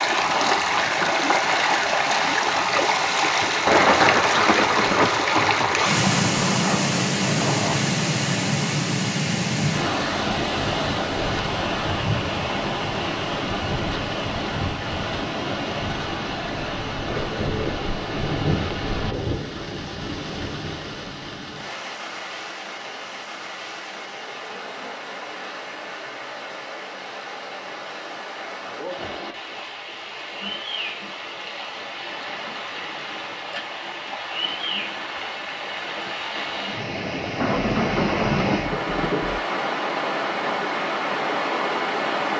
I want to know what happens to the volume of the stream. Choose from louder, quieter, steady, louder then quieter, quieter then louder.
quieter then louder.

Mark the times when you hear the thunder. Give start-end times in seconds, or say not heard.
3.6-7.8, 17.0-20.8, 37.4-39.4.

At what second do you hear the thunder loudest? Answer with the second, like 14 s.
4 s.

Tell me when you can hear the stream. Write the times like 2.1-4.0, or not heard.
0.0-42.3.